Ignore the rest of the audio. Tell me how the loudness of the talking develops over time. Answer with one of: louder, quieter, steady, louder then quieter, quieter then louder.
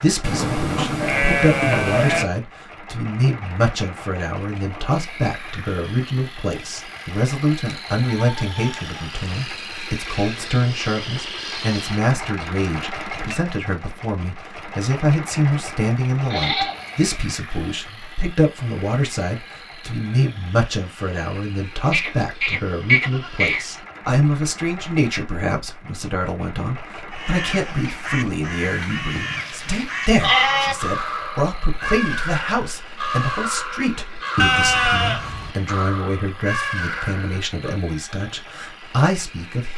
steady.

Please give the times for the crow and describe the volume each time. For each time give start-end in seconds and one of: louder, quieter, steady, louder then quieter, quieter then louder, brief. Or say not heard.
27.1-37.5 steady.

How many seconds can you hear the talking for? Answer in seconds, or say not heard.
40 s.